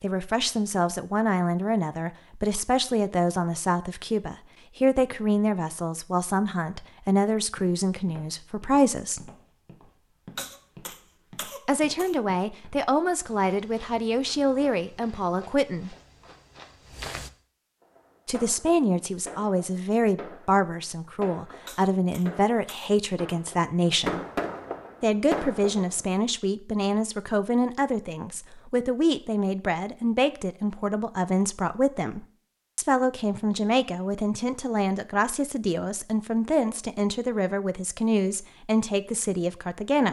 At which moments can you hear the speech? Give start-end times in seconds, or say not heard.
0.0-9.3, 11.7-15.9, 18.2-24.2, 25.0-40.0.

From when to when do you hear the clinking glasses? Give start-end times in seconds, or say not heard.
not heard.